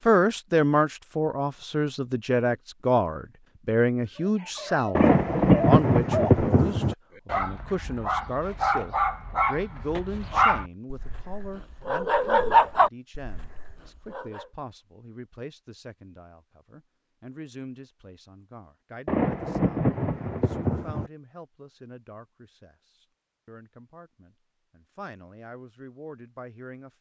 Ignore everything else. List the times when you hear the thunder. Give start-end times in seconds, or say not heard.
5.0-7.0, 19.1-21.1.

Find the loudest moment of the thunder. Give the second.
6 s.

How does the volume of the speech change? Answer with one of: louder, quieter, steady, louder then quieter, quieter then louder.
quieter.